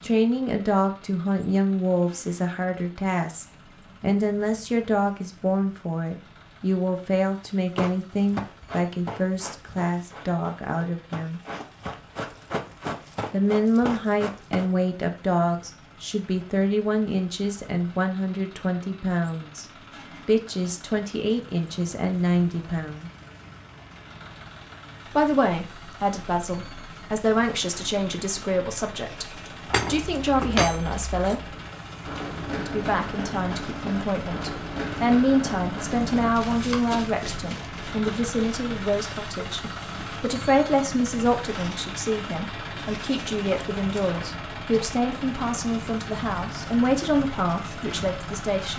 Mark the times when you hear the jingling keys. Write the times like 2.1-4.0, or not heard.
29.6-31.6.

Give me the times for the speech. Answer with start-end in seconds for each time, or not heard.
0.0-11.4, 13.3-19.6, 20.2-23.1, 25.1-31.6, 32.5-48.7.